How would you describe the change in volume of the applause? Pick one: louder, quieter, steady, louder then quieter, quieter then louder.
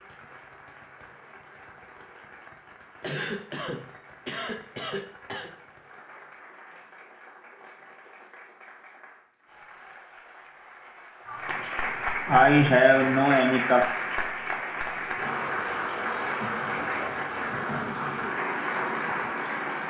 louder.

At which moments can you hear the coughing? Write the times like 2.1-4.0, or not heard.
3.0-5.5, 11.2-13.9.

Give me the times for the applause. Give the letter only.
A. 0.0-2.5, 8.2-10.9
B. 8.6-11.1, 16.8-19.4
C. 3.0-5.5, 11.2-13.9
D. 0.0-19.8
D.